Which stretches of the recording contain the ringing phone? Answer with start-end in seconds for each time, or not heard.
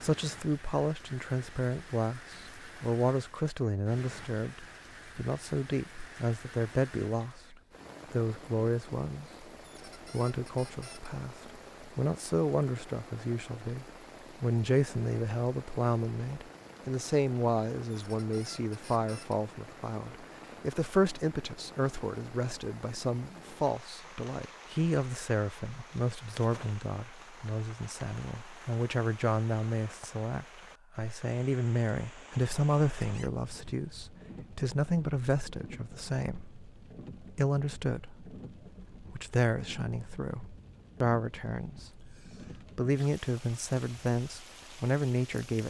not heard.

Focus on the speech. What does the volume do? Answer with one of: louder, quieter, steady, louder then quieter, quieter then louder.
steady.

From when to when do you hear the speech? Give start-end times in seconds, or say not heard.
0.0-9.4, 10.1-38.4, 39.0-45.6.